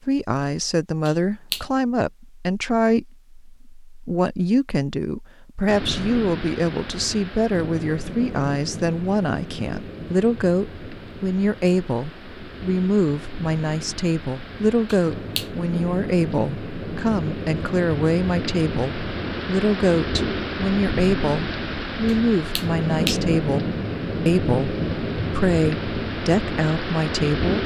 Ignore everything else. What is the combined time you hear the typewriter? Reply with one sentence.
You can't hear the typewriter here.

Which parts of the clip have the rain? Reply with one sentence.
The rain can be heard from 5.7 to 27.6 s.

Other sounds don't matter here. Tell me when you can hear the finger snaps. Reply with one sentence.
The finger snaps can be heard from 1.1 to 1.6 s, from 14.8 to 15.5 s and from 22.1 to 23.2 s.